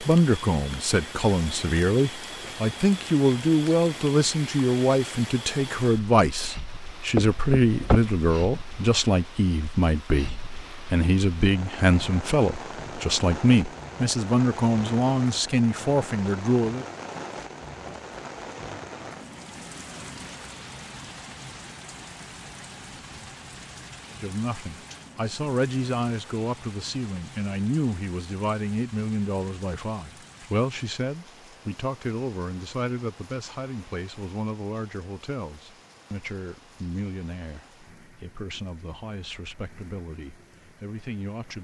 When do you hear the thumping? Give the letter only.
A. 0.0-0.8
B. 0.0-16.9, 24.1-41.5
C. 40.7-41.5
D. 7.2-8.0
D.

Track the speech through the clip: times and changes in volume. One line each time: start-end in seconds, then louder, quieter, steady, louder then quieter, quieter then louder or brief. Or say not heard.
0.0-16.9 steady
24.1-41.5 quieter.